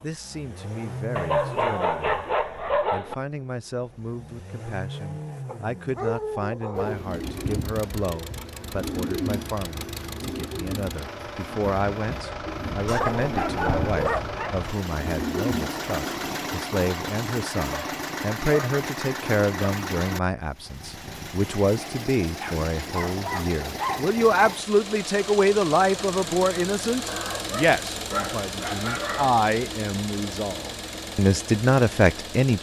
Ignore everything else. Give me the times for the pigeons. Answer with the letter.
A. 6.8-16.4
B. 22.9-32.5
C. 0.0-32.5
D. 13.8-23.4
A.